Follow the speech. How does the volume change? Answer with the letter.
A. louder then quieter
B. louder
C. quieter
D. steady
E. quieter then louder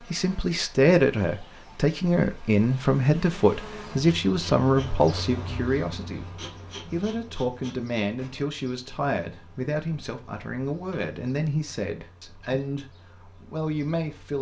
C.